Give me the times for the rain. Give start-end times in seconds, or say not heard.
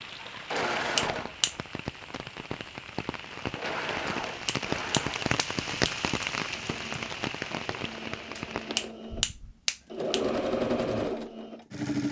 0.0-8.9.